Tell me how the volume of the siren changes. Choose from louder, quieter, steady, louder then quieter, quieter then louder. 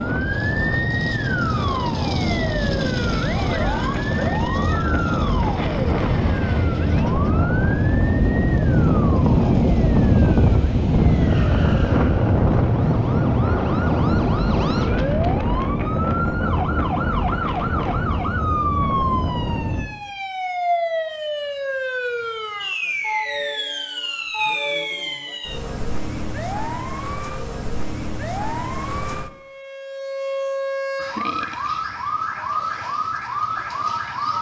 quieter then louder.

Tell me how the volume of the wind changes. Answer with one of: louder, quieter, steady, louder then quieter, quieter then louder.
louder then quieter.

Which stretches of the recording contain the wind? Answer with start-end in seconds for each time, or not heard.
0.0-19.9.